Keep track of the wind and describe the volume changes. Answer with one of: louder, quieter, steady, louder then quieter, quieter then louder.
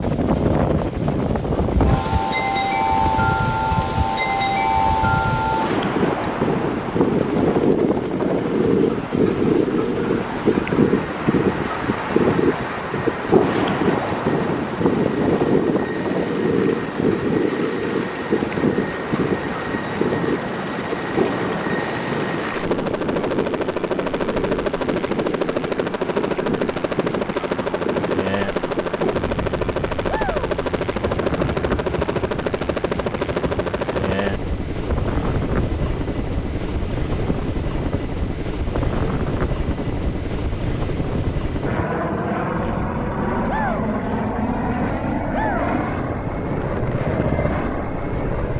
quieter.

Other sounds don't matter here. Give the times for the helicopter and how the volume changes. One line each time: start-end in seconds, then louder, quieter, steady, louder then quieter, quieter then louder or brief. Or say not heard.
0.0-48.5 louder.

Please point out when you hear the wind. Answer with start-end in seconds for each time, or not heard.
0.0-48.5.